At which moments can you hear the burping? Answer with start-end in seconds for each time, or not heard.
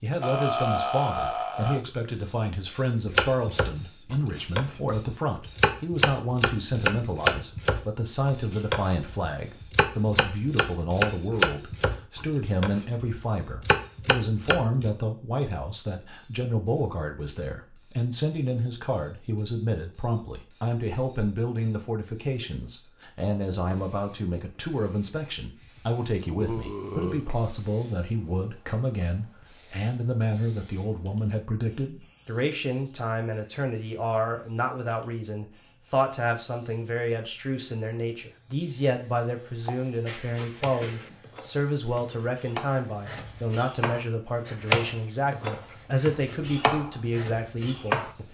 0.2-1.9, 26.2-27.2, 40.0-41.2.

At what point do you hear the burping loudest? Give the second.
1 s.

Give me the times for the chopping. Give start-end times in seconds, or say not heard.
3.0-14.9, 39.6-48.1.